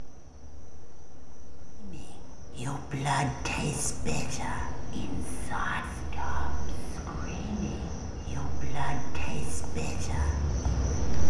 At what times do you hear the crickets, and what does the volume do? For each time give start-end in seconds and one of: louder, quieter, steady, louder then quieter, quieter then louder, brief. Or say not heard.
0.0-11.2 louder.